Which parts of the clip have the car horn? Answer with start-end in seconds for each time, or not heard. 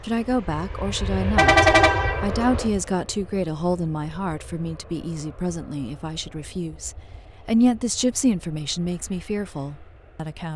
1.4-2.9.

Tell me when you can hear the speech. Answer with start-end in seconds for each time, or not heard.
0.0-10.5.